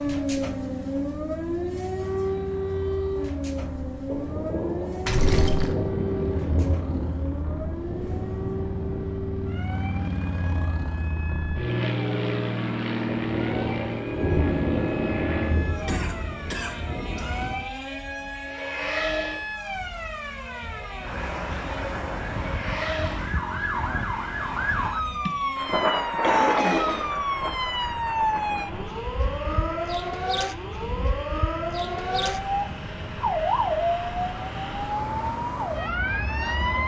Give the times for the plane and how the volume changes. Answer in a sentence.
You can hear the plane from 0.0 to 36.8 s, getting louder then quieter.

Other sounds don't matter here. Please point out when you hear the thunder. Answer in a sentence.
You can hear the thunder from 4.0 to 9.1 s, from 13.3 to 17.6 s and from 25.6 to 28.9 s.